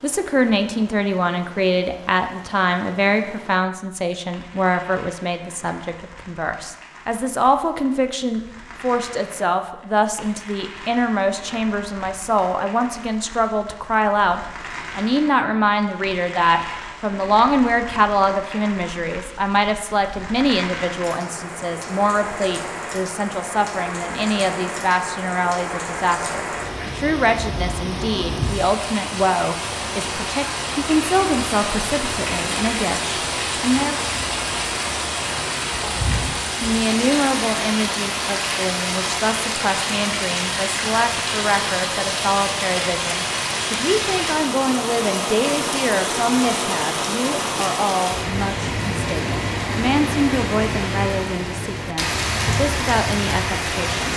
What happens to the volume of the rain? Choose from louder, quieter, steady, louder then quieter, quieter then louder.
louder.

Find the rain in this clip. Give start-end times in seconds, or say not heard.
0.0-54.1.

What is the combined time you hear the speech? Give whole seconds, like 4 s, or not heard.
52 s.